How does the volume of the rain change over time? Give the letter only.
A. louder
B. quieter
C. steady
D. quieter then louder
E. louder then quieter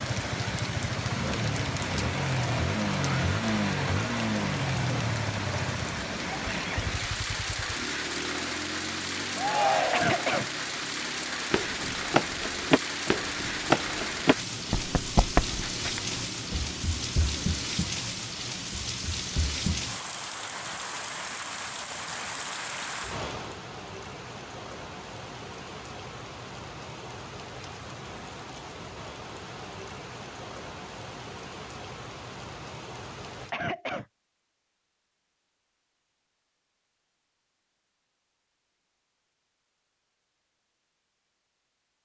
B.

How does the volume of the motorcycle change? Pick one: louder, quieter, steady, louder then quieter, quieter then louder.
quieter.